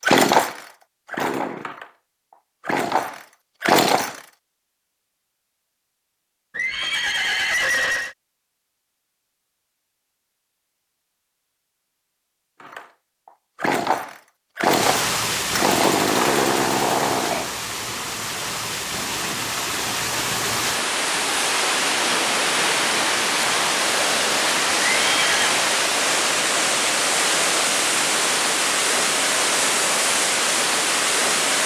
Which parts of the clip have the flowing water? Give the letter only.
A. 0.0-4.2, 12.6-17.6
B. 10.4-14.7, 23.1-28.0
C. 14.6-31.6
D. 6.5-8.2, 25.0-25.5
C.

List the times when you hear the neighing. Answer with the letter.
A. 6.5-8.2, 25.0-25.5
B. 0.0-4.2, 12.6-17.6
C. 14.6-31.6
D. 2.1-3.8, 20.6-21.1
A.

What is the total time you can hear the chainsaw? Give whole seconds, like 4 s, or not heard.
9 s.